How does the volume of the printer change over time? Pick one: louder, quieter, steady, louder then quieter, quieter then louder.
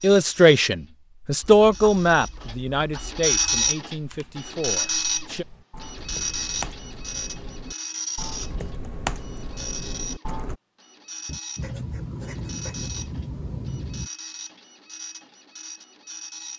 quieter.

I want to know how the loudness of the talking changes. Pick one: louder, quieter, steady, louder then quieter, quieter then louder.
quieter.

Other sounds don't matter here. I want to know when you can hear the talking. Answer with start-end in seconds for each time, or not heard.
0.0-5.5.